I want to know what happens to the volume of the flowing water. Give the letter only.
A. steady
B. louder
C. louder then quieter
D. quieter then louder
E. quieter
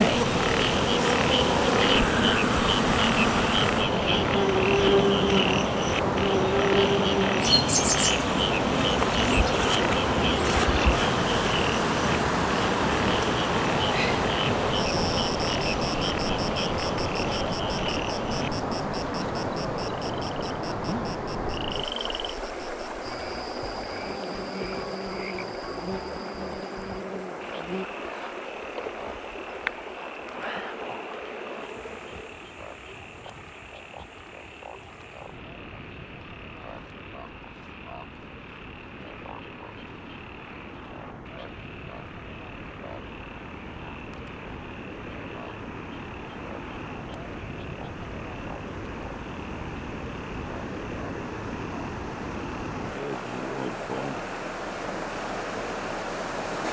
D.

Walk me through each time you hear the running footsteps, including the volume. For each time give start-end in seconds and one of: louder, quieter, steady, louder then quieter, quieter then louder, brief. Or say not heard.
not heard.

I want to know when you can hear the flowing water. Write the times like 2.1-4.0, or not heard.
0.0-56.6.